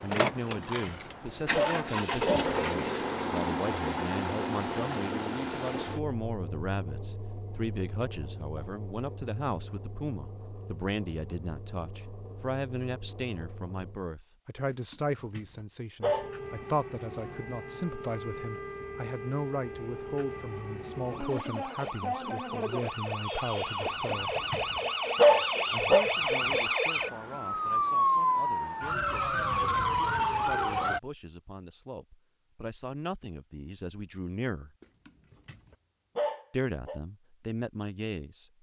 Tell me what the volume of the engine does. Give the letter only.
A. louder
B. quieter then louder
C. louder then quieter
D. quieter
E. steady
D.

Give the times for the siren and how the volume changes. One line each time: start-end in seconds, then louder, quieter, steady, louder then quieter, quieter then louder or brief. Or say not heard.
16.0-31.0 louder.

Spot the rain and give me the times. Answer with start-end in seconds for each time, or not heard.
not heard.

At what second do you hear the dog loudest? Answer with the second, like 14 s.
25 s.